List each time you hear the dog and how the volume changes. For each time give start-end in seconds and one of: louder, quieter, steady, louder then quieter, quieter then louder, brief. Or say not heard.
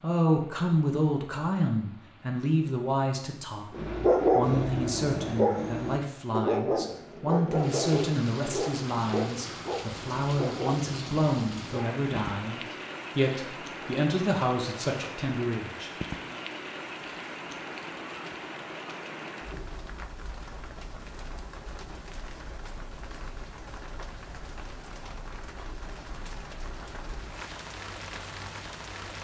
3.7-11.9 quieter.